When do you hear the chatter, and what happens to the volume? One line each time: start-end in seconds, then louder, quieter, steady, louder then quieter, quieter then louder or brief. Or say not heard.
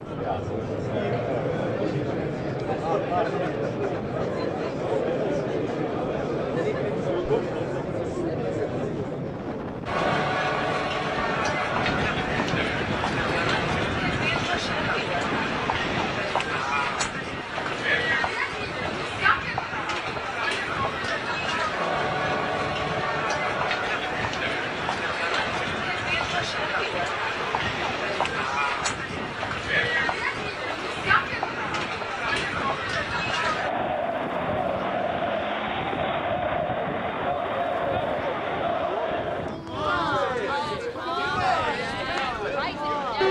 0.0-43.2 steady.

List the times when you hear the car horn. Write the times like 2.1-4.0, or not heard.
not heard.